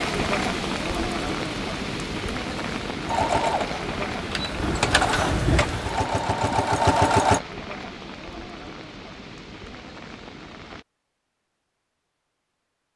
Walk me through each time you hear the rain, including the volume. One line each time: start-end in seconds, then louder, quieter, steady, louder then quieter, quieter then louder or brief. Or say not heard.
0.0-10.8 quieter.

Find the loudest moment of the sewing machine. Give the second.
7 s.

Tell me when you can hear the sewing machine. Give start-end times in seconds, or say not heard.
3.0-7.4.